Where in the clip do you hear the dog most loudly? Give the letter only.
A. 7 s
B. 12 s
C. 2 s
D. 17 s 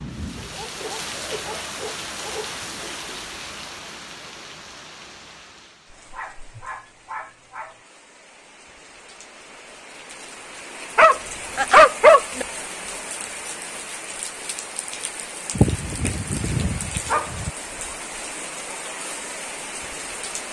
B.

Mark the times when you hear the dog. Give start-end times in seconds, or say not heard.
0.3-2.6, 5.9-7.8, 10.9-12.4, 15.6-17.5.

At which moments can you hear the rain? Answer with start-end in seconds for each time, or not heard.
0.0-20.4.